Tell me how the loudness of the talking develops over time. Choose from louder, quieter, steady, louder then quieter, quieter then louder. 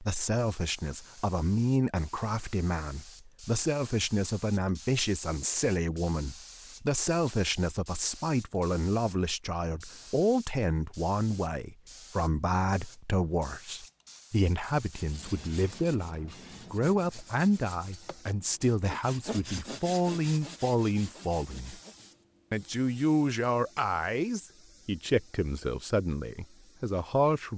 steady.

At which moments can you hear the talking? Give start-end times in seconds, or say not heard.
0.0-21.8, 22.5-27.5.